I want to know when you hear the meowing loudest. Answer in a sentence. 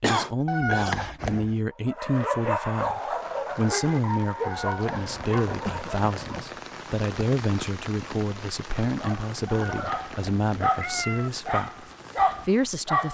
The volume of the meowing peaks at 1 second.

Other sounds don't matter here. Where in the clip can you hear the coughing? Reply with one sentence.
You can hear the coughing from 0.0 to 1.0 s, from 5.6 to 6.5 s and from 9.3 to 10.0 s.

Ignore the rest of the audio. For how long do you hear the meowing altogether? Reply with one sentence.
The meowing can be heard for 4 seconds in total.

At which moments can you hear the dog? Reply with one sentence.
You can hear the dog from 1.7 to 6.5 s and from 8.9 to 13.0 s.